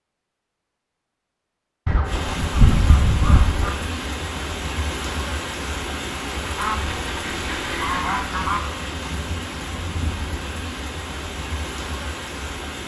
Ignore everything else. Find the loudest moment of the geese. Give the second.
3 s.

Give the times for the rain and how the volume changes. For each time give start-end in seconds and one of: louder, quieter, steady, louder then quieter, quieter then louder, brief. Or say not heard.
2.0-12.8 steady.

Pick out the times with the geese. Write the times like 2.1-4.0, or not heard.
1.9-3.7, 6.5-8.6.